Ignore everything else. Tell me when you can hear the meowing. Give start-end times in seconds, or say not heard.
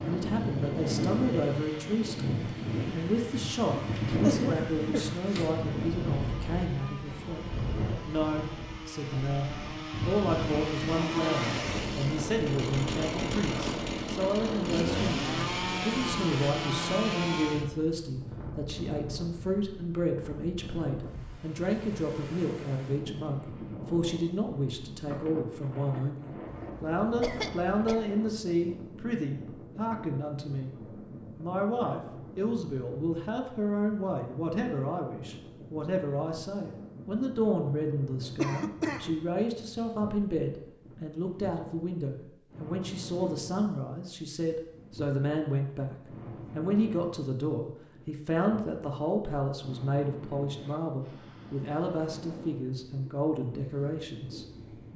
not heard.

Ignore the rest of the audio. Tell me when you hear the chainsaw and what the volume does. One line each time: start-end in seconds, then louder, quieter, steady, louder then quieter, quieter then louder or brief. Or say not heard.
0.0-17.7 louder.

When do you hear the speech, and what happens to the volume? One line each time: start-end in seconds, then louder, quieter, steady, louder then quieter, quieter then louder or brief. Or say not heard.
0.0-30.8 steady
31.4-54.9 steady.